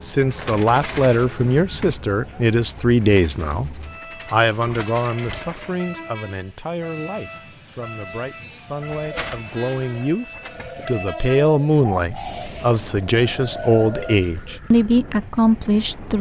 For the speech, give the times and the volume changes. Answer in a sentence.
The speech can be heard from 0.0 to 16.1 s, getting quieter then louder.